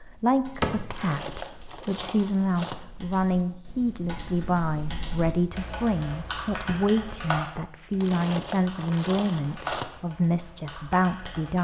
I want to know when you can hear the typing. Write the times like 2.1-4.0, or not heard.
0.0-11.5.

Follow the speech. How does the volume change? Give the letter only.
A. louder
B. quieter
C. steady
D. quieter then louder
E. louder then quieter
C.